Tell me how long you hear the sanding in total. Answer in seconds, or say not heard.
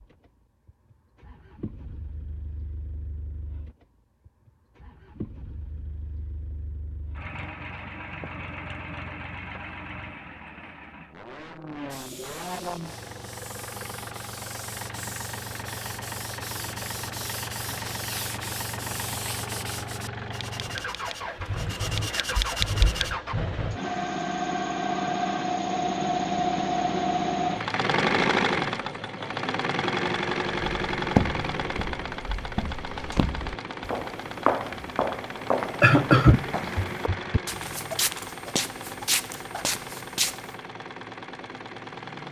11 s.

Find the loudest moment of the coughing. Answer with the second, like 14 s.
36 s.